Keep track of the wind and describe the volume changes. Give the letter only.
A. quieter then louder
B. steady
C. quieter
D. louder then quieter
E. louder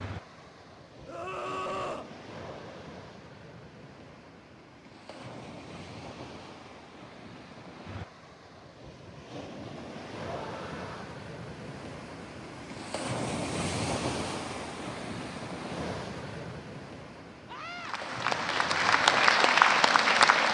D.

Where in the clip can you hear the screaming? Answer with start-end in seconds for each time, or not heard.
1.1-2.1, 10.3-11.2, 17.4-17.9.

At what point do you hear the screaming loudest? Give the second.
2 s.